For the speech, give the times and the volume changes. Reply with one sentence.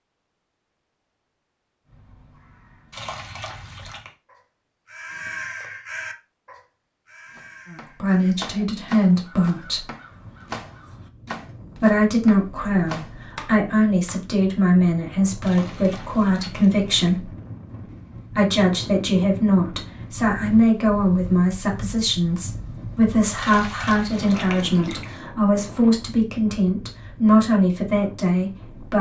The speech can be heard briefly from 7.7 to 9.8 s; from 11.8 to 17.3 s, at a steady volume; and from 18.3 to 28.9 s, at a steady volume.